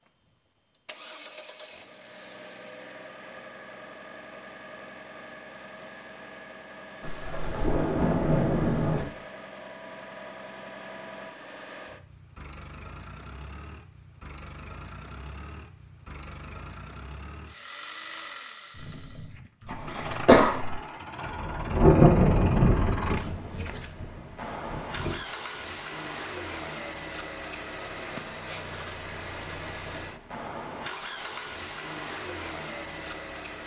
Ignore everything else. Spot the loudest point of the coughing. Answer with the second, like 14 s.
20 s.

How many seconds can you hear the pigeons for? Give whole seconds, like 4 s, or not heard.
not heard.